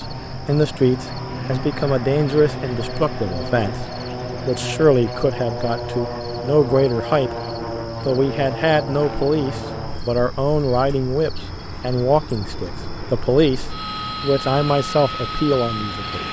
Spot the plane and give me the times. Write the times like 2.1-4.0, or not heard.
0.0-16.2.